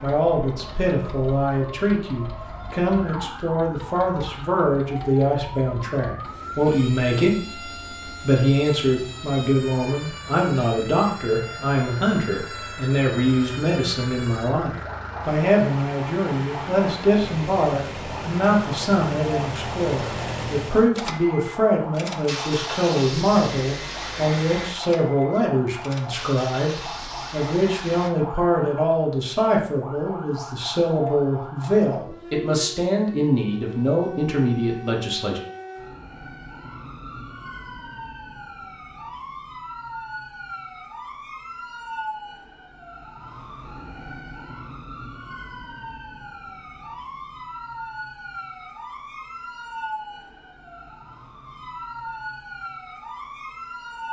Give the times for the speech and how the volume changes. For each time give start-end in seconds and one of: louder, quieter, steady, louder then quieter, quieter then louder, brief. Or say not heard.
0.0-35.4 steady.